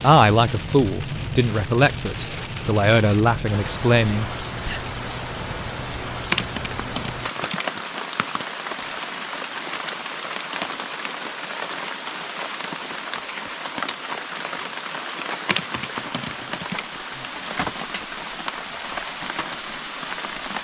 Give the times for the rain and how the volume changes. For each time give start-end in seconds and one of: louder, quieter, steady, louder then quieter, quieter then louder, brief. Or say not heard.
0.0-20.5 steady.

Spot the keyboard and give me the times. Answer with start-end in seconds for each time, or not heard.
6.3-8.4, 15.5-17.0.